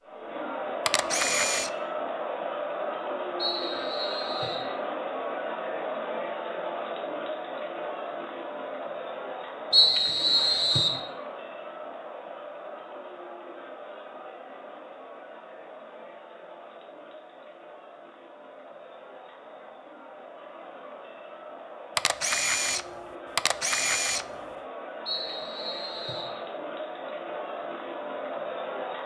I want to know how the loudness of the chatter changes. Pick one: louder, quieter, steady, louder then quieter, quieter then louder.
quieter then louder.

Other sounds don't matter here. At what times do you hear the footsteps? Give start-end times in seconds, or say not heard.
not heard.